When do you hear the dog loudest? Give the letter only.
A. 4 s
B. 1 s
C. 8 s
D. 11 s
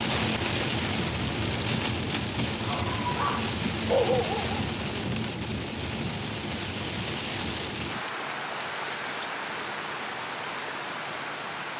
A.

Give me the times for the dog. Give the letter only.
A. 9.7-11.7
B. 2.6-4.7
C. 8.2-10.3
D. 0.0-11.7
B.